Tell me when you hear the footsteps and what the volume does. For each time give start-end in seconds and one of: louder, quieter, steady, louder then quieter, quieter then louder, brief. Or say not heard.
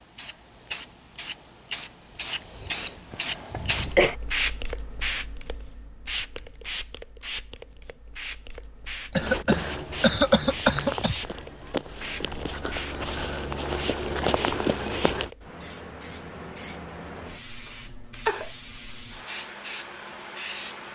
9.2-15.3 louder.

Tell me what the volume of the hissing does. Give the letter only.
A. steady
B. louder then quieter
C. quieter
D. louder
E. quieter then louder
C.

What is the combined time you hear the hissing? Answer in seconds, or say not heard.
21 s.